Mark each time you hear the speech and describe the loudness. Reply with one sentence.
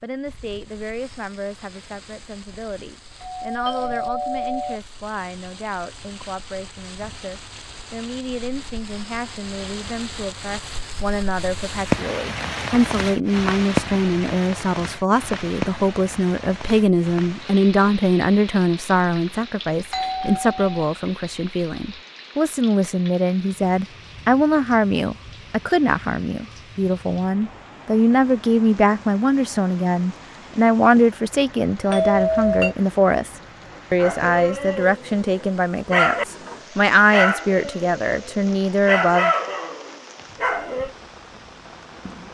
You can hear the speech from 0.0 to 39.3 s, getting louder.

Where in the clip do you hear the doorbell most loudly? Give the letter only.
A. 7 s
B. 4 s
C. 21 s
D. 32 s
D.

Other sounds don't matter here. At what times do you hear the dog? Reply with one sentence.
The dog can be heard from 34.0 to 36.2 s and from 37.1 to 40.9 s.